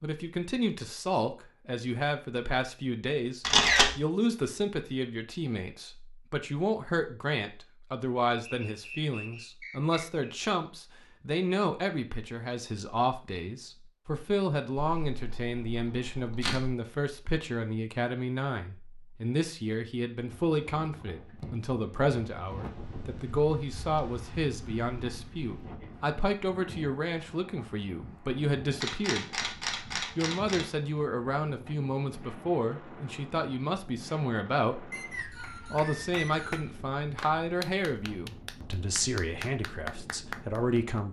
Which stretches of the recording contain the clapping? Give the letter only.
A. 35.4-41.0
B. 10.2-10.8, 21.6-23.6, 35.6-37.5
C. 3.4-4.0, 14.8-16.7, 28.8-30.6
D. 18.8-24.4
A.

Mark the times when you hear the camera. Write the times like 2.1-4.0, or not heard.
3.4-4.0, 14.8-16.7, 28.8-30.6.